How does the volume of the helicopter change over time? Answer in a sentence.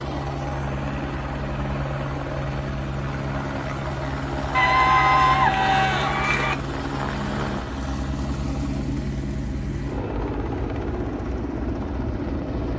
The volume of the helicopter stays about the same.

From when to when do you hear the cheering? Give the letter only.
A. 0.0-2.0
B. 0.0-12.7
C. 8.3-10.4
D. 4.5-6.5
D.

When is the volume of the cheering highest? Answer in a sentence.
The loudest moment of the cheering is at 5 seconds.